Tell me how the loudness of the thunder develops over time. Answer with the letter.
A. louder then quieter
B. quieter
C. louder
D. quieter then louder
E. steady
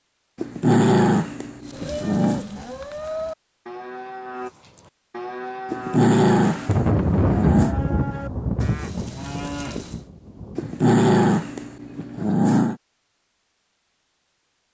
B.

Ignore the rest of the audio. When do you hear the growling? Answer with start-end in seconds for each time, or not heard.
0.3-2.5, 5.7-7.8, 10.6-12.8.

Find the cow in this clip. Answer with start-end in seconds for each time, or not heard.
1.6-10.1.